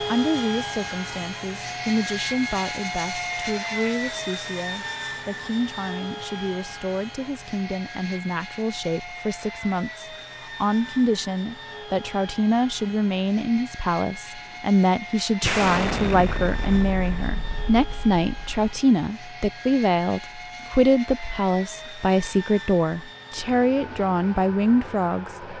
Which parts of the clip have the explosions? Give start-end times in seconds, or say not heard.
15.4-18.6.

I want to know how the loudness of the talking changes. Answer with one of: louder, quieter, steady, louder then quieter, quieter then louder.
louder.